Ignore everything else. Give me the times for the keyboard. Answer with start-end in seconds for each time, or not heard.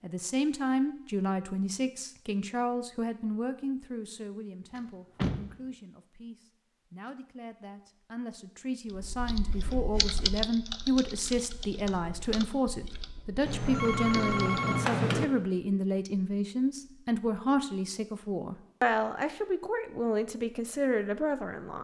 8.9-14.6.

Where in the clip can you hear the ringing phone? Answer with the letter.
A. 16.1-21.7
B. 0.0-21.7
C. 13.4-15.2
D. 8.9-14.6
C.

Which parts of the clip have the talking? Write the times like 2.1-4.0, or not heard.
0.0-21.7.